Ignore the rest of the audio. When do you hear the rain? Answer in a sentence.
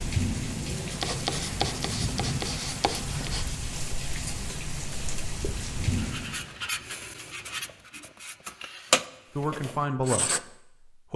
You can hear the rain from 0.0 to 6.5 s.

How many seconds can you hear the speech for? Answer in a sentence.
You can hear the speech for 2 seconds altogether.